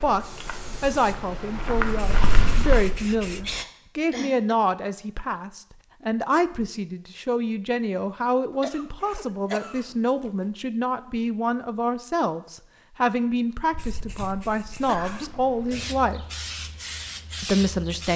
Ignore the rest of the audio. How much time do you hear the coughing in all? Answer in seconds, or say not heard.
4 s.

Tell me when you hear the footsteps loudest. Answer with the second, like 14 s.
2 s.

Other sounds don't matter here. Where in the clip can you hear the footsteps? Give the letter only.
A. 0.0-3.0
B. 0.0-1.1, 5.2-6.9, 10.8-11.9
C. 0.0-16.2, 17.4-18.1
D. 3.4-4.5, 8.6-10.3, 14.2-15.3
A.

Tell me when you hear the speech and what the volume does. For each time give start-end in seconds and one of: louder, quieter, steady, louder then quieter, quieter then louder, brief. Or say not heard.
0.0-16.2 steady
17.4-18.1 brief.